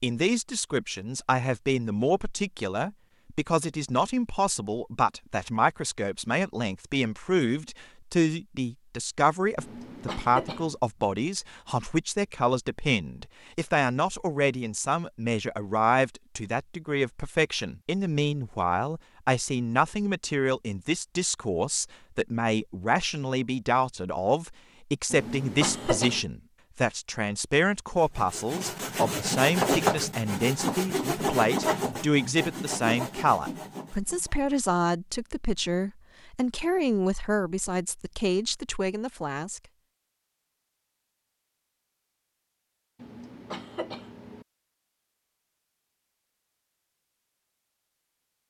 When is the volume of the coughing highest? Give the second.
26 s.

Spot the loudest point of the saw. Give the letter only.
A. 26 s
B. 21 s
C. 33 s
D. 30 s
D.